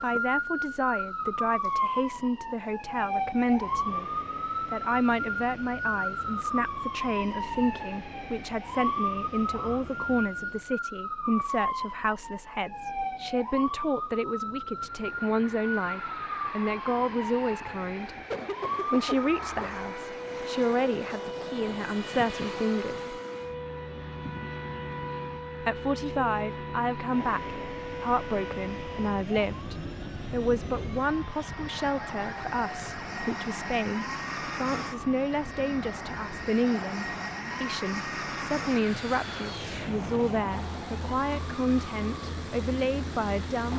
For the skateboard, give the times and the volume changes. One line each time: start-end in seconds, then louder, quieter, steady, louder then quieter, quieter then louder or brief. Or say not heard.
not heard.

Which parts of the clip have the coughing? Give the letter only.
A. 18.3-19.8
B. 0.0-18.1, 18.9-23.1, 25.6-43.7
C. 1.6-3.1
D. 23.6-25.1
A.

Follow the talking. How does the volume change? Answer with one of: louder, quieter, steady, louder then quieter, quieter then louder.
steady.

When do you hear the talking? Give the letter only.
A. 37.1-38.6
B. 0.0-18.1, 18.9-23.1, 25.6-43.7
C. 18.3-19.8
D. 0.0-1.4
B.